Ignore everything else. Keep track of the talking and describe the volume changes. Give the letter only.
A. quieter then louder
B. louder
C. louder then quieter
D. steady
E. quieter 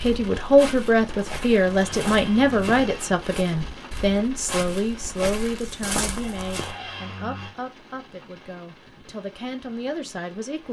E.